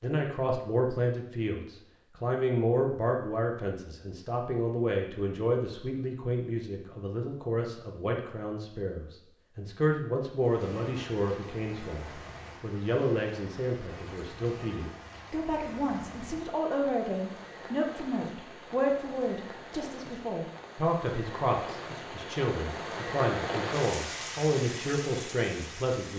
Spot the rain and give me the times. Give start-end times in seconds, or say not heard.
10.4-26.1.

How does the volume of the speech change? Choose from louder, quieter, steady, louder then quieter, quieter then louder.
steady.